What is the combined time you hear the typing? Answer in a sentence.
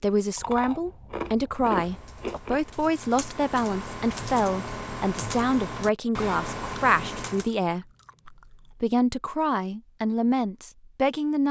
You can hear the typing for 6 seconds altogether.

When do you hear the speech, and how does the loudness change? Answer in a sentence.
The speech can be heard from 0.0 to 11.4 s, at a steady volume.